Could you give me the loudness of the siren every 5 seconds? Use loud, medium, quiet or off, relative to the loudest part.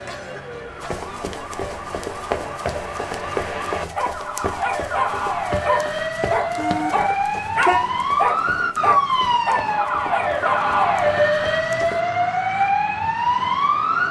medium, loud, loud.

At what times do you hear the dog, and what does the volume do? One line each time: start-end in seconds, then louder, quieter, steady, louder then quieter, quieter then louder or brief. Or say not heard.
4.0-10.9 steady.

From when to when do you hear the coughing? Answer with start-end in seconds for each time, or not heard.
0.1-0.9.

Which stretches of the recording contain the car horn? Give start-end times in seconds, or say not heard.
6.5-8.0.